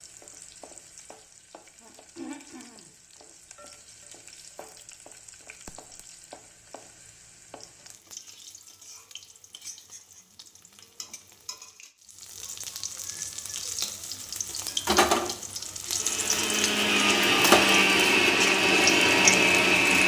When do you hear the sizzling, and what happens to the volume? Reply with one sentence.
The sizzling can be heard from 0.0 to 20.0 s, getting louder.